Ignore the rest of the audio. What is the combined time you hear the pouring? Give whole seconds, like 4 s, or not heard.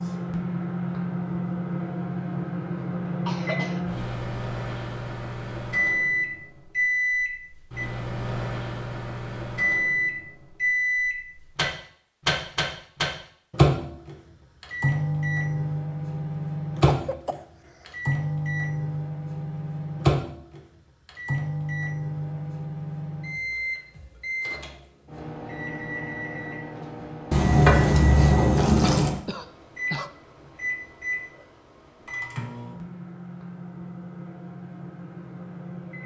2 s.